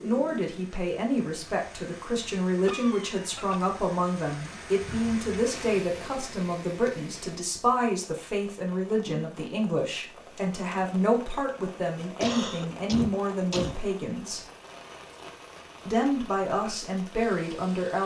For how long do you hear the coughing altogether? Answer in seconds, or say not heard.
3 s.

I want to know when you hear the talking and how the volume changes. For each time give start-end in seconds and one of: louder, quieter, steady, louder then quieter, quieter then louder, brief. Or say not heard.
0.0-14.4 steady
15.8-18.0 brief.